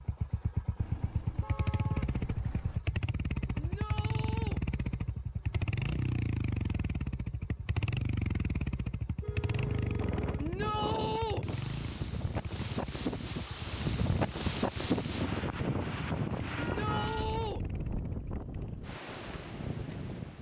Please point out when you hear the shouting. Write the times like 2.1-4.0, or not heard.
3.5-4.6, 10.3-11.4, 16.6-17.6.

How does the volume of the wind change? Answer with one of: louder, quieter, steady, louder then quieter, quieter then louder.
louder then quieter.